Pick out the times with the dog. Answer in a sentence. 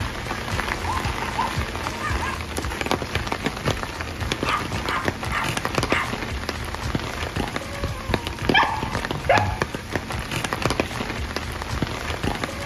You can hear the dog from 0.8 to 2.4 s, from 4.5 to 6.1 s and from 8.4 to 9.6 s.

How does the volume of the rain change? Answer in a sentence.
The volume of the rain stays about the same.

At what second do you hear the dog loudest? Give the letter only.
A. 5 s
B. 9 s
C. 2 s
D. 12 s
B.